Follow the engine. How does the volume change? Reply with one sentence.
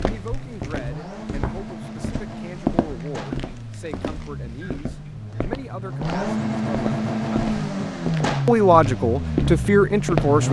The loudness of the engine goes up.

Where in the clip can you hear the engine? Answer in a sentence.
You can hear the engine from 0.0 to 10.4 s.